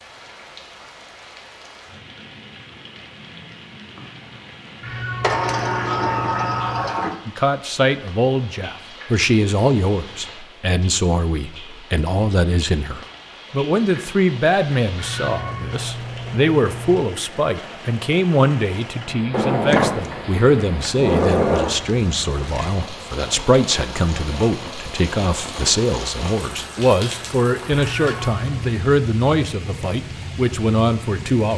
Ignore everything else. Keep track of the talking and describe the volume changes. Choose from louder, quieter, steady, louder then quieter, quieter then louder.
steady.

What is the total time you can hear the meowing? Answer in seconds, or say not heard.
5 s.